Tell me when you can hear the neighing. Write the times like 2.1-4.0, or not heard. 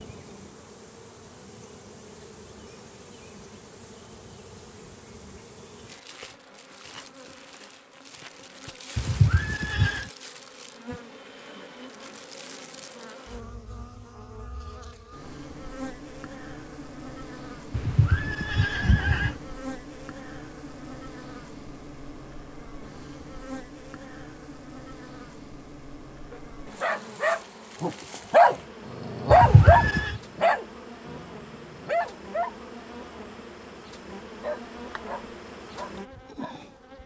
8.9-10.1, 17.7-19.4, 29.3-30.2.